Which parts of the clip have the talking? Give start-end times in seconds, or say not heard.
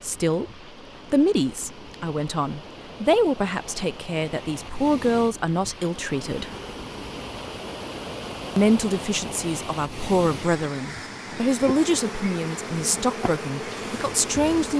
0.0-0.5, 1.1-6.5, 8.6-14.7.